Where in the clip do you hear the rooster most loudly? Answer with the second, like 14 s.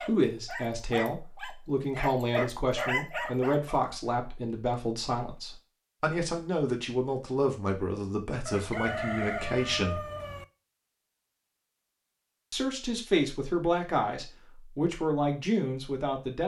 9 s.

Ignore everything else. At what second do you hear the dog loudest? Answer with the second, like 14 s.
3 s.